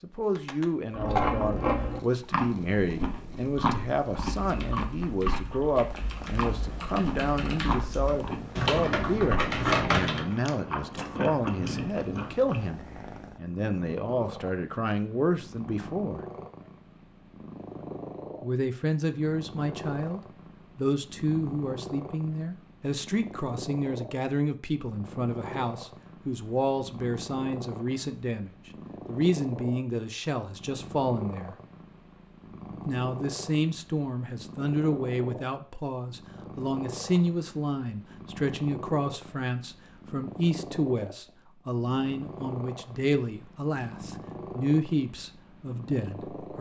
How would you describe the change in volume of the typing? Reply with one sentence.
The loudness of the typing goes up.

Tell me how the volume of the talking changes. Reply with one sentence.
The volume of the talking stays about the same.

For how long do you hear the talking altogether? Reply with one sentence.
The talking can be heard for 43 seconds in total.